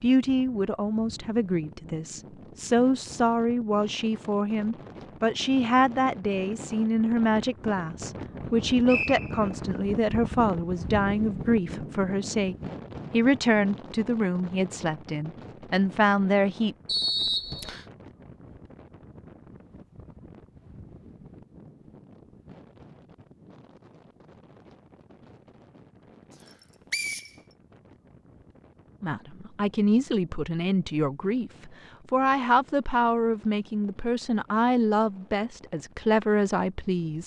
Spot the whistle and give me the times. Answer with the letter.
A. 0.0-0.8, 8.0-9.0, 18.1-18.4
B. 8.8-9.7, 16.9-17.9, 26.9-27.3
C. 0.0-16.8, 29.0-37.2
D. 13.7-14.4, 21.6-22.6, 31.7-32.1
B.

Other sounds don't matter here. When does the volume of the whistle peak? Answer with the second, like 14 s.
17 s.